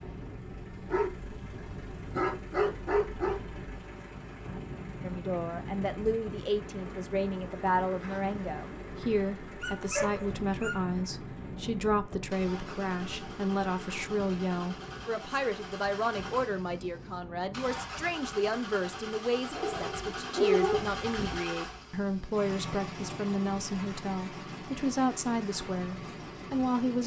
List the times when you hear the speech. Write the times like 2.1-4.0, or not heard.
5.0-27.0.